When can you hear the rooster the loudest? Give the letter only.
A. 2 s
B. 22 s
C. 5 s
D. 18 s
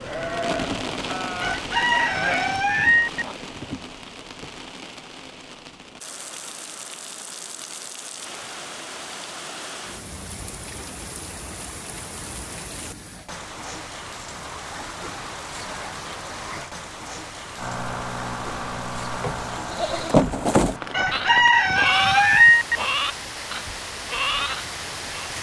B.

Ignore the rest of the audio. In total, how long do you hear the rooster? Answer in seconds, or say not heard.
4 s.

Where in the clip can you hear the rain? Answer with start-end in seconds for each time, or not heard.
0.0-25.3.